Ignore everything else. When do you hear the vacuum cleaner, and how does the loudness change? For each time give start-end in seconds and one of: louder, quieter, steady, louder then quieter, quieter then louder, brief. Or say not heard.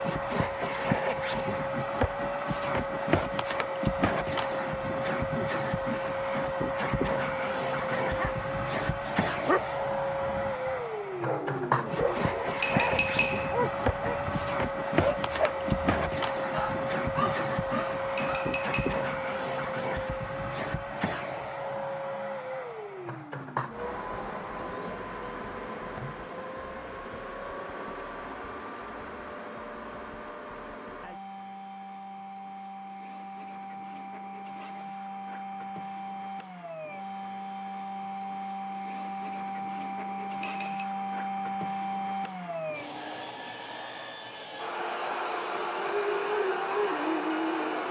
0.0-47.8 quieter then louder.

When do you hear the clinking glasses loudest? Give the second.
13 s.